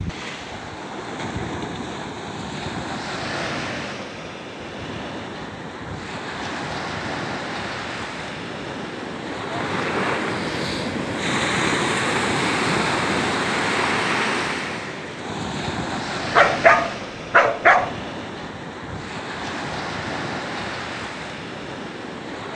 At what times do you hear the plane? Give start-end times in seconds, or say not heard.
not heard.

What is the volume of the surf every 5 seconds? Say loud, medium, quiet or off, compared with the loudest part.
medium, medium, loud, medium, medium.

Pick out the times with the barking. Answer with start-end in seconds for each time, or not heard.
16.4-17.9.